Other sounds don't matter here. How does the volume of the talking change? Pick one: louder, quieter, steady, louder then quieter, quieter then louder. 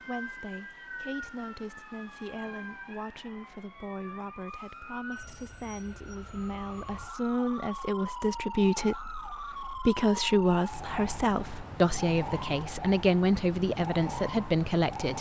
louder.